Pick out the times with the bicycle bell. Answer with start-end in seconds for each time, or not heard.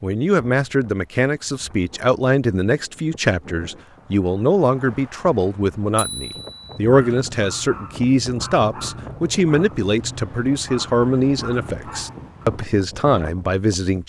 6.0-6.8.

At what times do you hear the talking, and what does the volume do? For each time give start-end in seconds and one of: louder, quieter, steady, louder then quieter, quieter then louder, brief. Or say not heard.
0.0-14.0 steady.